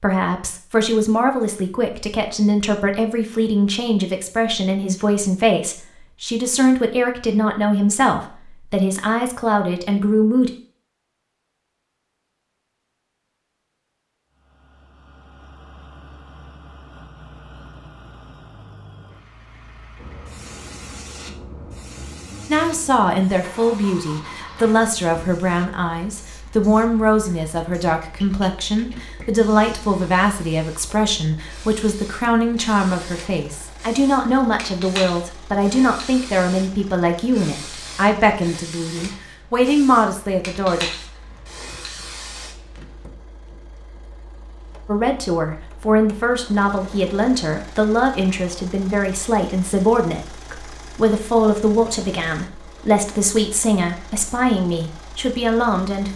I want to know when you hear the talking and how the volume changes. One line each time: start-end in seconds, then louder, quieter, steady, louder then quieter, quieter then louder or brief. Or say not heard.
0.0-10.5 steady
22.4-40.9 steady
44.9-56.1 steady.